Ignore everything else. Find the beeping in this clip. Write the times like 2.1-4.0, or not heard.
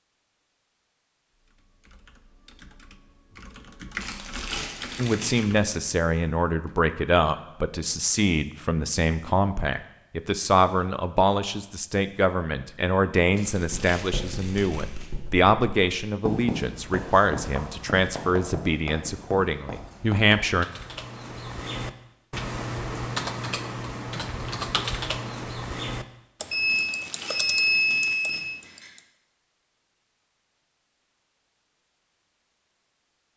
26.5-28.9.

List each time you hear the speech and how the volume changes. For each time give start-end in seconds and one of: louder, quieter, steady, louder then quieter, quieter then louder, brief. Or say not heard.
5.0-20.6 steady.